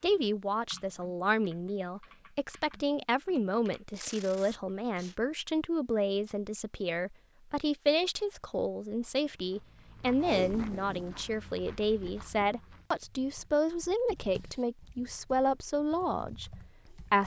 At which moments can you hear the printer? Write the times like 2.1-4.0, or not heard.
not heard.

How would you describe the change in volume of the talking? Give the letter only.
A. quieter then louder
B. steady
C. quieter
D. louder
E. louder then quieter
B.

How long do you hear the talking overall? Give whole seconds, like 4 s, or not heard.
17 s.